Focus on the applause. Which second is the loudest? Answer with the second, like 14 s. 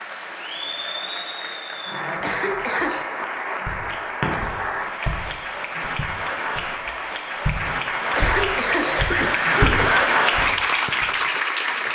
10 s.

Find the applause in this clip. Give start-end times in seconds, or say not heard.
0.0-11.8.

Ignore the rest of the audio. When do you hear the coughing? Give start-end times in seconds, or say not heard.
2.2-3.1, 8.1-10.0.